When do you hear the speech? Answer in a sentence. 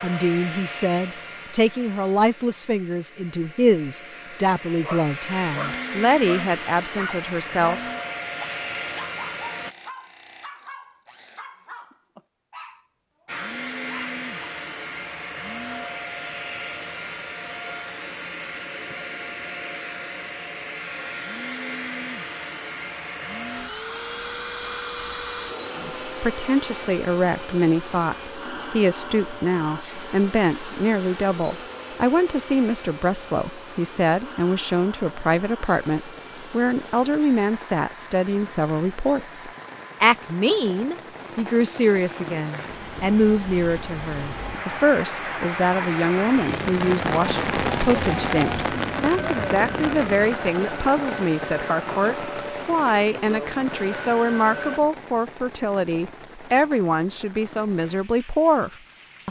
The speech can be heard from 0.0 to 7.8 s and from 25.8 to 59.2 s.